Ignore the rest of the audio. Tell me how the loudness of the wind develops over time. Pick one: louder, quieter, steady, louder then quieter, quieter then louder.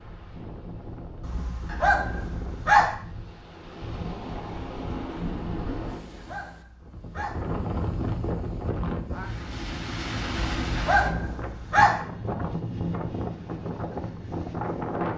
louder.